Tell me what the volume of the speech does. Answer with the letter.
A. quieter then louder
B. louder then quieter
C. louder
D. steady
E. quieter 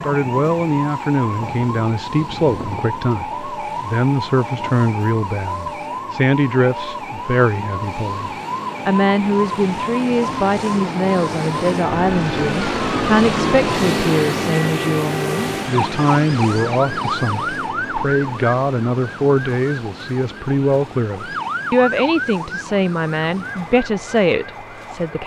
D.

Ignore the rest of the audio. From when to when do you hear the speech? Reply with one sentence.
You can hear the speech from 0.0 to 25.2 s.